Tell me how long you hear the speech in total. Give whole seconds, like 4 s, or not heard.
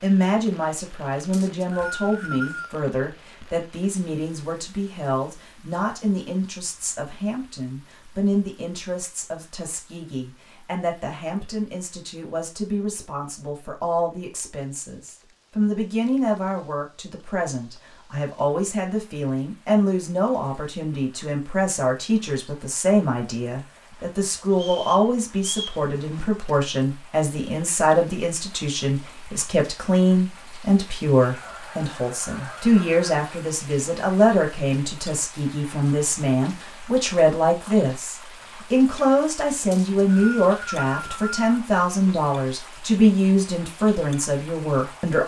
45 s.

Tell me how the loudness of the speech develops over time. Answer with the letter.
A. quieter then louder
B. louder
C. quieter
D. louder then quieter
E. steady
B.